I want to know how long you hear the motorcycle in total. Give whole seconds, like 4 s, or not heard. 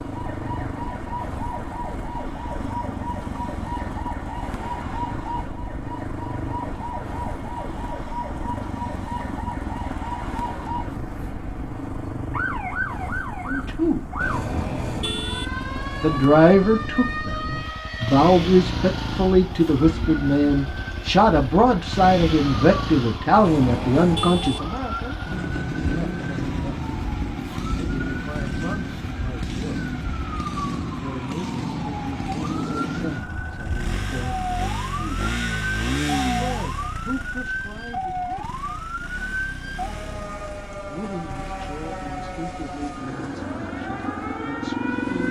45 s.